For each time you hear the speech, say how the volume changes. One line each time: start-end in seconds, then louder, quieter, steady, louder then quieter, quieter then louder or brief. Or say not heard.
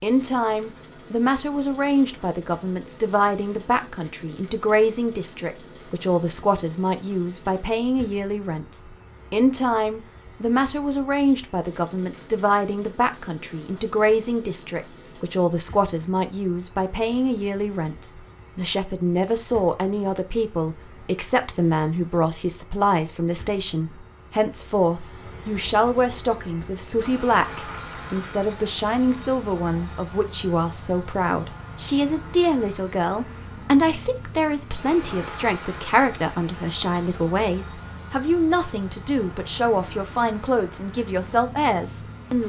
0.0-42.4 steady.